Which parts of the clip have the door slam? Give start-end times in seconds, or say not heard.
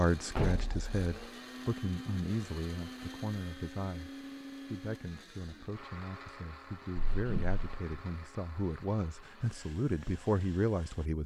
0.3-1.2, 7.0-8.0.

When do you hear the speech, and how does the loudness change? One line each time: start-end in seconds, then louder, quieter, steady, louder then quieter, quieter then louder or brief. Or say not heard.
0.0-11.2 quieter then louder.